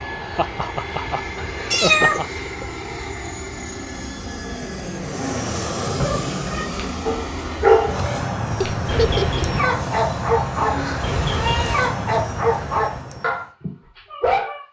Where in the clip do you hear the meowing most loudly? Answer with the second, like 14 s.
2 s.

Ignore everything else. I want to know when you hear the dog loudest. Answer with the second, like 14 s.
8 s.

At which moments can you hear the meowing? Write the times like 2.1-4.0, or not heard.
1.6-2.7, 5.8-6.7, 10.7-11.8.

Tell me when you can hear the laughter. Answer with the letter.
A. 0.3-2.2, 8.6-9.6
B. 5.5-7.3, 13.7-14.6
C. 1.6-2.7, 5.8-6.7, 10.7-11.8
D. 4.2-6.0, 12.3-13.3
A.